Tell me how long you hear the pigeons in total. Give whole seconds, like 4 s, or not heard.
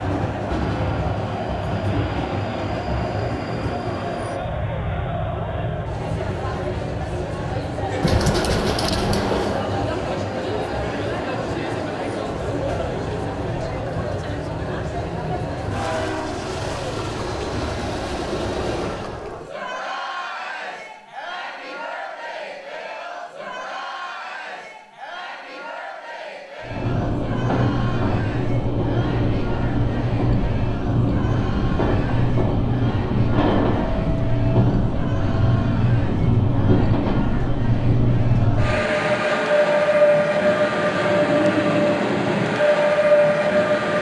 2 s.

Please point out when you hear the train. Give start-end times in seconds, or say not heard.
0.0-19.2, 26.6-43.9.